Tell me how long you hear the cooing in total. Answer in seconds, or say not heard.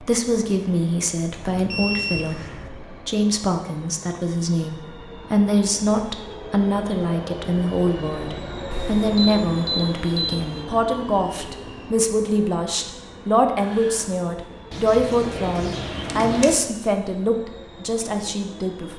2 s.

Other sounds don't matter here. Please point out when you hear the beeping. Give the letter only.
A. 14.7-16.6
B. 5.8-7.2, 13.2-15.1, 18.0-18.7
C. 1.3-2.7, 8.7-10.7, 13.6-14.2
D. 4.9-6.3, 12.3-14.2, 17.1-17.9
C.